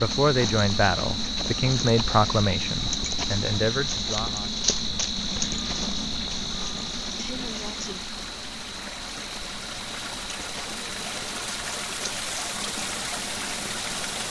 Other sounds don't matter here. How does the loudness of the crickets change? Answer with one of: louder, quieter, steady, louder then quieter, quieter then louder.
quieter.